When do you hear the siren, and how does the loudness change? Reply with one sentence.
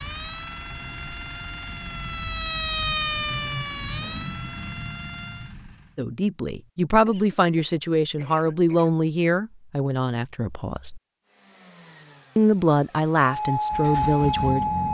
You can hear the siren from 0.0 to 5.5 s, getting louder then quieter; and briefly from 13.2 to 14.8 s.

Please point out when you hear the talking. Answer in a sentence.
You can hear the talking from 6.0 to 11.0 s and from 12.3 to 14.7 s.